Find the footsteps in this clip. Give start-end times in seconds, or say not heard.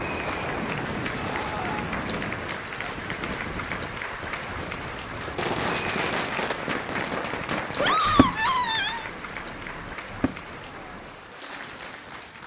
not heard.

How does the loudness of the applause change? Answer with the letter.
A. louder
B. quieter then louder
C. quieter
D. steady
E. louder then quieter
C.